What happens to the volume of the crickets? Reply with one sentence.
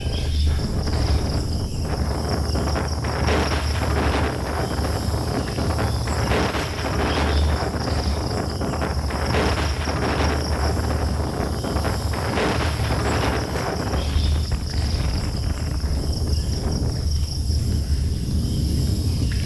The volume of the crickets stays about the same.